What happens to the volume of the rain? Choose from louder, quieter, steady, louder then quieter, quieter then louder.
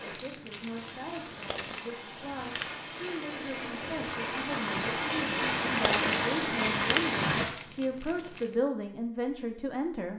louder.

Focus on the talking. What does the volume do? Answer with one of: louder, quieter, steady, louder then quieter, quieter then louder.
louder.